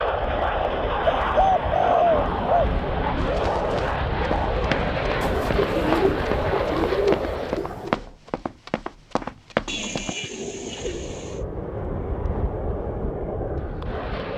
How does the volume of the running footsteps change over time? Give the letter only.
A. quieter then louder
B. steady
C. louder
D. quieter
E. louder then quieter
B.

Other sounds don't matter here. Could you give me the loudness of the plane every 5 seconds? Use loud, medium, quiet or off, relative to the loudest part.
loud, loud, medium.